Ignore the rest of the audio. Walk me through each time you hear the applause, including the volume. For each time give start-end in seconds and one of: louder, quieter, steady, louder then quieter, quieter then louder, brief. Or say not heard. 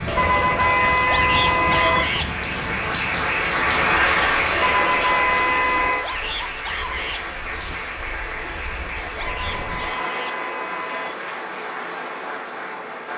0.0-13.1 louder then quieter.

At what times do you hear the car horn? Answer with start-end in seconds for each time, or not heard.
0.1-2.0, 4.5-6.0, 9.2-11.2.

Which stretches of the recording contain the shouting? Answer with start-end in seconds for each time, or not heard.
1.1-2.3, 6.0-7.2, 9.2-10.3.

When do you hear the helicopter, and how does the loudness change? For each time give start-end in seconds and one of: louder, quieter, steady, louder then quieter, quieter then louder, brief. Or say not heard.
not heard.